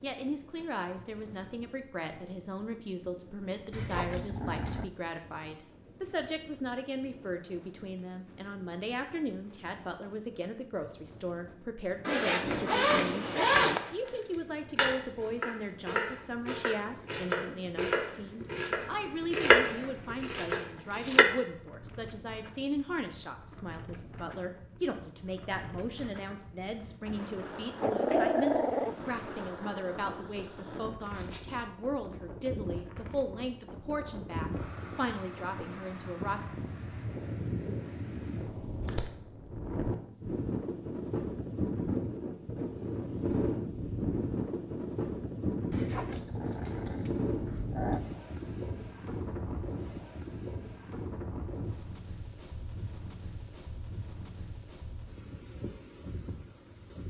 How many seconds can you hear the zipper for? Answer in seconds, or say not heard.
2 s.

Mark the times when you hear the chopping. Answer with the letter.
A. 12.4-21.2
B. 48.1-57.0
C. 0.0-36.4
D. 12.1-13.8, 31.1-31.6
A.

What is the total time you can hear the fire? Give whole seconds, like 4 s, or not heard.
not heard.